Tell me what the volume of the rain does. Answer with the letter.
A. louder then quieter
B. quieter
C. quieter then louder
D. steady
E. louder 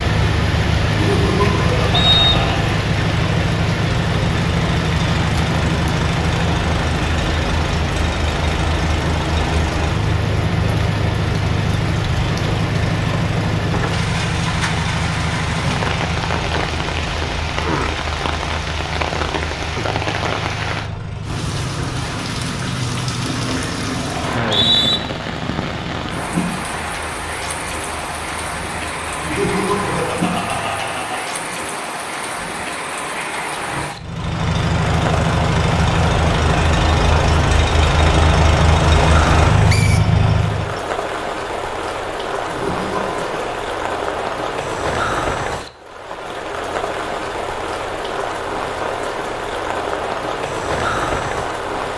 D.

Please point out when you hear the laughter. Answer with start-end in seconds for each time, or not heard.
0.9-2.8, 29.2-31.4, 42.5-43.5.